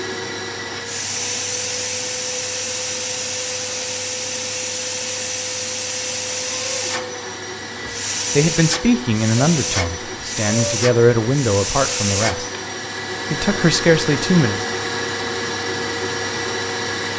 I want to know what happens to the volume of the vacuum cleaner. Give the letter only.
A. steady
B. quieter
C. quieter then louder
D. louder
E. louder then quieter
A.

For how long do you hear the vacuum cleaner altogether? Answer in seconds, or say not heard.
17 s.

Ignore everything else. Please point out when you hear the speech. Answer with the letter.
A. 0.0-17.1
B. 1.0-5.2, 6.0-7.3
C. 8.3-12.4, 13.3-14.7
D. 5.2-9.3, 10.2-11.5
C.